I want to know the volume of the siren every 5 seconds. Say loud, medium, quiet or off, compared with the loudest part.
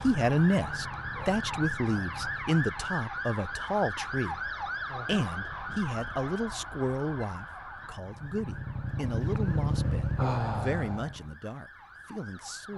loud, medium, quiet.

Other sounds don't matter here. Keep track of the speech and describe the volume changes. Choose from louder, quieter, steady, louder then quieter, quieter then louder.
quieter.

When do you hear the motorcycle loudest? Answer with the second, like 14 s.
10 s.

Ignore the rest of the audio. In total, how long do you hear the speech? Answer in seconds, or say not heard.
12 s.